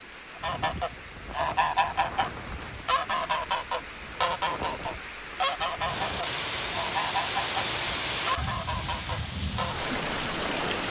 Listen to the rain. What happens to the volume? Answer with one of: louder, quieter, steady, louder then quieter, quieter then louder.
louder.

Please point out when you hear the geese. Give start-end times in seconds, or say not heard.
0.3-9.9.